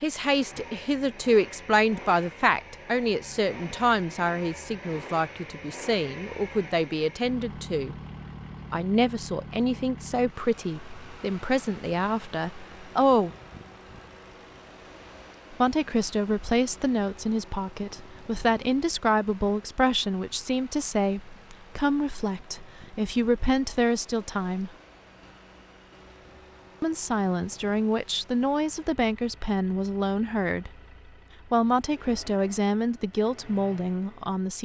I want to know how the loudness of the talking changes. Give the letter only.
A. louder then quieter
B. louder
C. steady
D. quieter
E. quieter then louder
C.